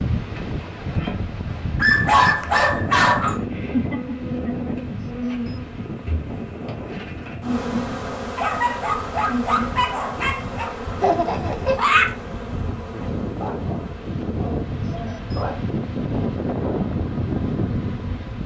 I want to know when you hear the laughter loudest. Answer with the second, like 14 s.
12 s.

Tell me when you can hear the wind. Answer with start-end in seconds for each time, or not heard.
0.0-18.4.